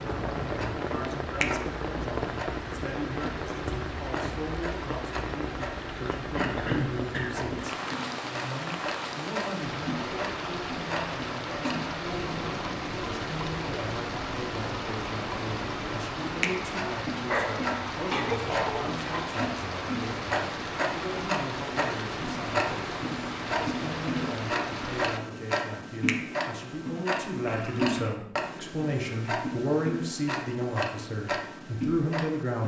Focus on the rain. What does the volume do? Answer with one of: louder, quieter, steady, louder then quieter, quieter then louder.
steady.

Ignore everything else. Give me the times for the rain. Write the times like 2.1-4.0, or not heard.
0.0-25.2.